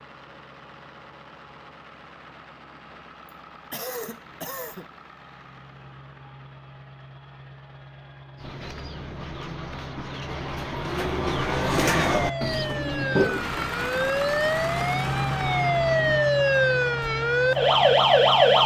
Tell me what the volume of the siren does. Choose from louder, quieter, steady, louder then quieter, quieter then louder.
louder.